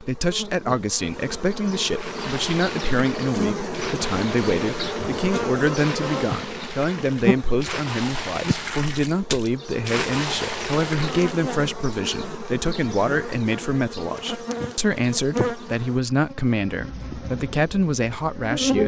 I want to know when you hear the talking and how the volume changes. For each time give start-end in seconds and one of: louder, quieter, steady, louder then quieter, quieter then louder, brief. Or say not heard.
0.0-18.8 steady.